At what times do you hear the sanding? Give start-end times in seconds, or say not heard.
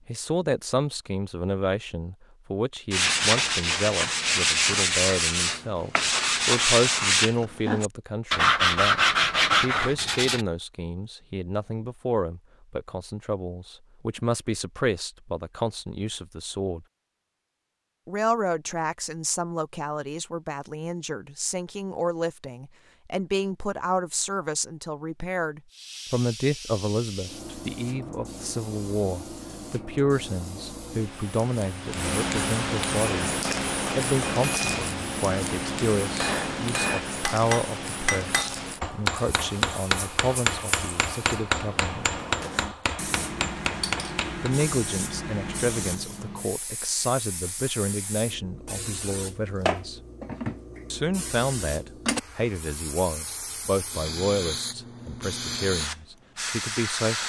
2.9-10.4.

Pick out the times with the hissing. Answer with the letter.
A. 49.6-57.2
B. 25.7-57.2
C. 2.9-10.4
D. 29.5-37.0
B.